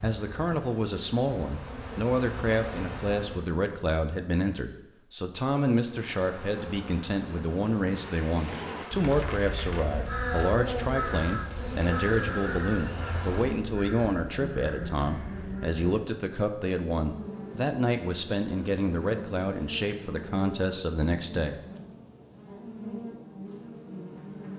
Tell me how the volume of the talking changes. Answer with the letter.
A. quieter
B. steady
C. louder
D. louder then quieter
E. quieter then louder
B.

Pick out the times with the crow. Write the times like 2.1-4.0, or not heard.
8.4-16.0.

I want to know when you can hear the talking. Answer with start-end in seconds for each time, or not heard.
0.0-21.6.